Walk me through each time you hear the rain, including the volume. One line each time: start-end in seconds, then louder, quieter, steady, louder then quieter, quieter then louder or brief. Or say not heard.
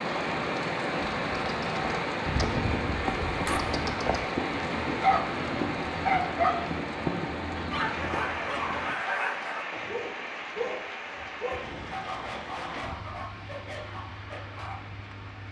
0.0-15.4 quieter.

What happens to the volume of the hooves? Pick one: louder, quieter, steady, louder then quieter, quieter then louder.
quieter.